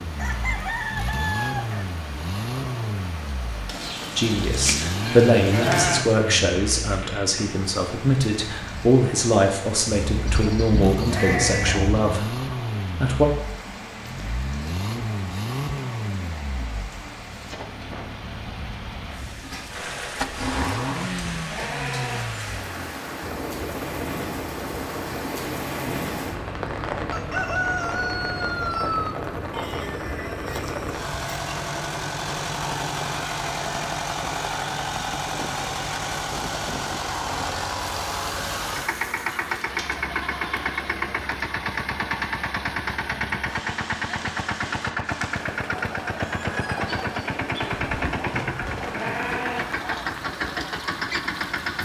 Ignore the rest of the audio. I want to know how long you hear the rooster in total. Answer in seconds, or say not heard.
5 s.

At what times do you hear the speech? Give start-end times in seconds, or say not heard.
4.2-13.3.